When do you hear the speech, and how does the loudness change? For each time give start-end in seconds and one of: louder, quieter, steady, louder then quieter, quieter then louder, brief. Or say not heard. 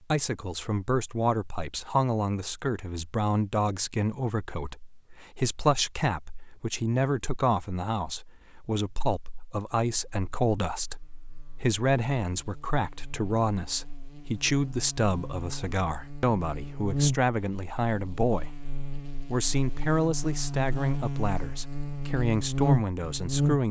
0.1-23.6 steady.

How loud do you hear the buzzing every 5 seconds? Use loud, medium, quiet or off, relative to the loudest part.
off, off, quiet, medium, loud.